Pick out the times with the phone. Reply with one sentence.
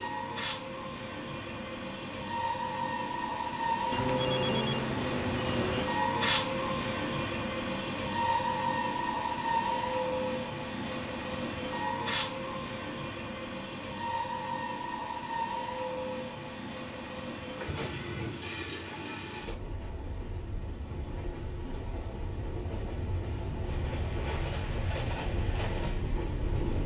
You can hear the phone from 3.9 to 5.9 s.